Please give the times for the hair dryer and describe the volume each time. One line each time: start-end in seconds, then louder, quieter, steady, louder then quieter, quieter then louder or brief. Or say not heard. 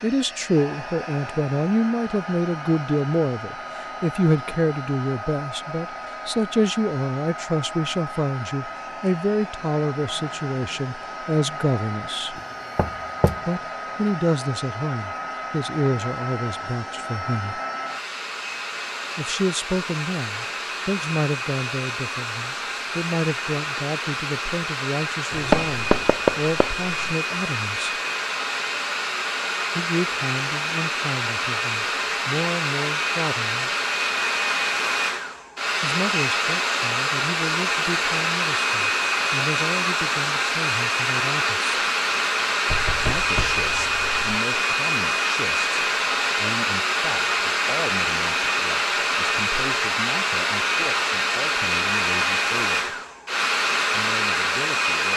0.0-55.1 louder.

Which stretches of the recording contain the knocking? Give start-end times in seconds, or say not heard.
12.3-13.4, 25.3-27.1, 42.6-44.2.